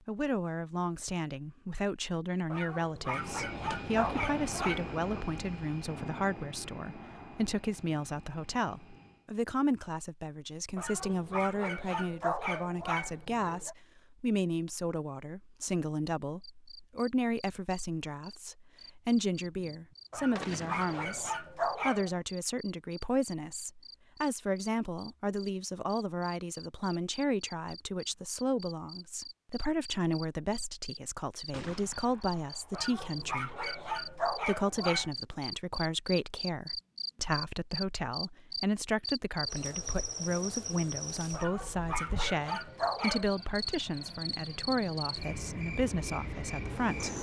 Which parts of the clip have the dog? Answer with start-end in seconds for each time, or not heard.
2.5-5.0, 10.8-13.8, 20.1-22.2, 32.7-35.1, 41.3-43.3.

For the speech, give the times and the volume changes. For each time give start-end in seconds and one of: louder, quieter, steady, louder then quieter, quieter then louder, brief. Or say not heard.
0.1-47.1 steady.